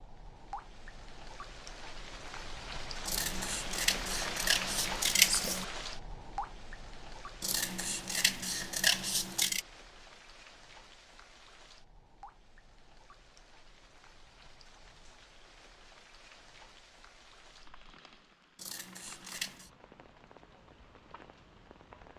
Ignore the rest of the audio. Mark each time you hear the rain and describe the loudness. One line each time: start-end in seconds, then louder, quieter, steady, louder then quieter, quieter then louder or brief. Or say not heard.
0.0-22.1 quieter.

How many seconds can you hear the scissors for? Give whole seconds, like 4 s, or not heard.
6 s.